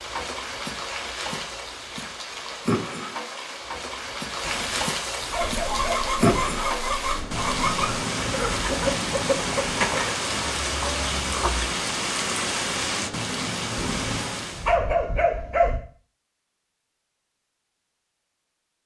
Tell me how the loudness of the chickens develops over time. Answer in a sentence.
The volume of the chickens goes down.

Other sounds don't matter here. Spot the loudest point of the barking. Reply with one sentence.
The volume of the barking peaks at 15 seconds.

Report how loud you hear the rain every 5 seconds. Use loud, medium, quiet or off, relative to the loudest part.
loud, loud, loud, off.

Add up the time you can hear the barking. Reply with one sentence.
You can hear the barking for 4 seconds altogether.